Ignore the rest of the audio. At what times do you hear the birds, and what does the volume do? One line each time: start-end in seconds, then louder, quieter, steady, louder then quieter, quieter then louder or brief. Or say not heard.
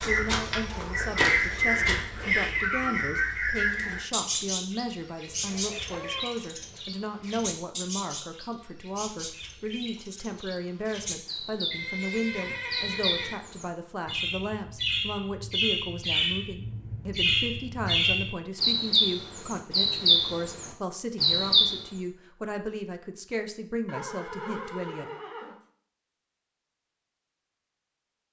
0.0-21.8 quieter then louder.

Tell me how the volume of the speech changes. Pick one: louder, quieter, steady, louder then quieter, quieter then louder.
steady.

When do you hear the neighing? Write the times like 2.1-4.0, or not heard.
5.4-6.3, 11.7-13.4, 23.9-25.6.